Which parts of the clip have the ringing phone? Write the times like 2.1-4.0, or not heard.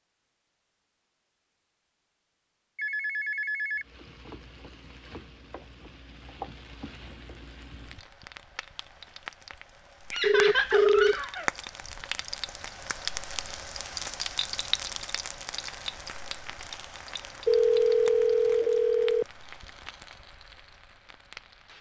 2.8-3.9, 10.2-11.2, 17.4-19.2.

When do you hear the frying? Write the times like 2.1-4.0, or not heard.
3.8-21.7.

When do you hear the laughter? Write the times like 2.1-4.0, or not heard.
10.1-11.5.